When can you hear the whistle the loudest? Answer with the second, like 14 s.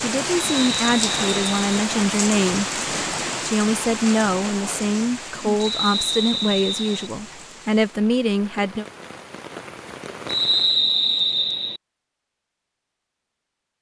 11 s.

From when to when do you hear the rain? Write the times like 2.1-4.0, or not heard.
0.0-10.8.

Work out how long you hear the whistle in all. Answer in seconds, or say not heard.
4 s.